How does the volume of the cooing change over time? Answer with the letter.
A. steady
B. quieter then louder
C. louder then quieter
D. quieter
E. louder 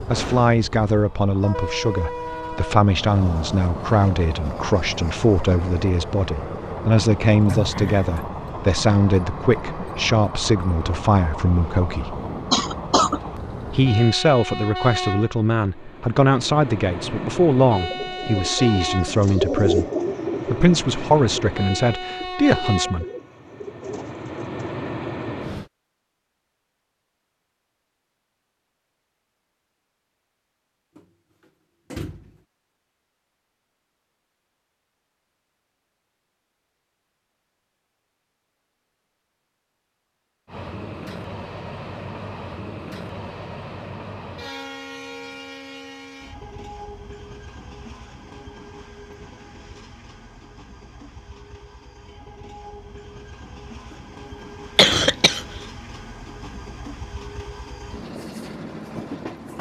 C.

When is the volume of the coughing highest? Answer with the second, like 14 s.
55 s.